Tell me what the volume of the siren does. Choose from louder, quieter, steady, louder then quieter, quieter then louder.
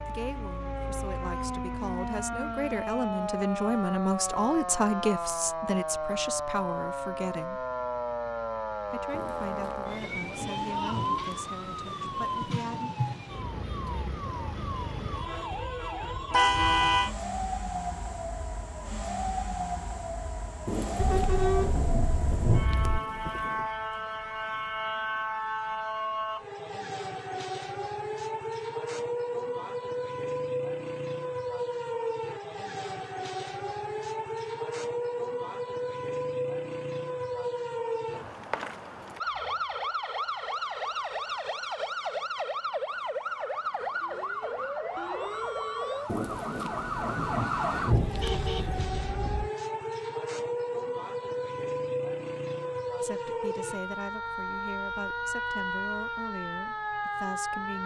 steady.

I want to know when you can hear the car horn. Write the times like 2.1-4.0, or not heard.
16.3-17.1, 20.9-23.0, 47.9-49.5.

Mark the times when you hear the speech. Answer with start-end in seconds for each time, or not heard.
0.0-7.7, 8.8-12.9, 53.0-57.8.